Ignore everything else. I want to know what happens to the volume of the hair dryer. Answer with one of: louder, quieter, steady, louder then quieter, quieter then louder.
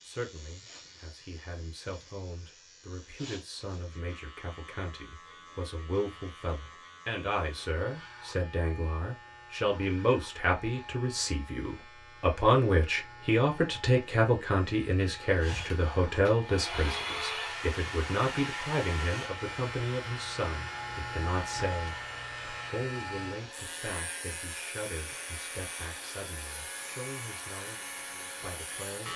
quieter.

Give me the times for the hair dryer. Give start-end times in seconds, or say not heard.
15.4-29.1.